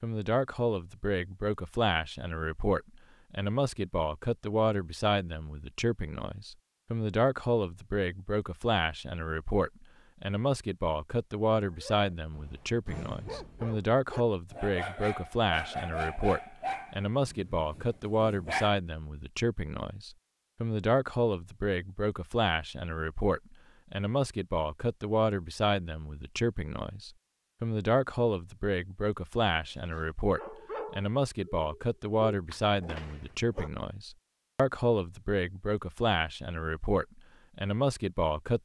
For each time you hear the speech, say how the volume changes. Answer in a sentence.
You can hear the speech from 0.0 to 38.6 s, at a steady volume.